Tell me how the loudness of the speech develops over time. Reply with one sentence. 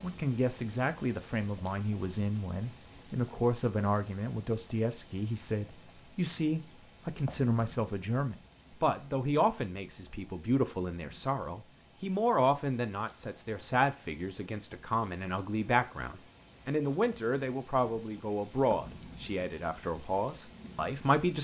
The loudness of the speech stays about the same.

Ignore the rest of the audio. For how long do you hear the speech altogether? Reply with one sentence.
You can hear the speech for 21 seconds altogether.